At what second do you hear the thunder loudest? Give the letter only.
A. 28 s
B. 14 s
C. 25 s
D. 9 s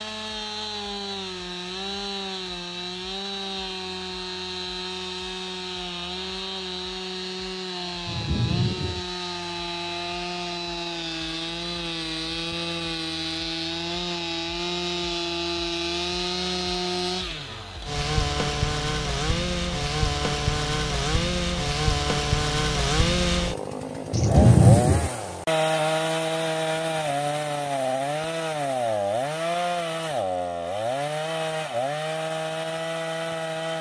C.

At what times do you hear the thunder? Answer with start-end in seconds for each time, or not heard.
8.1-9.1, 24.1-25.1.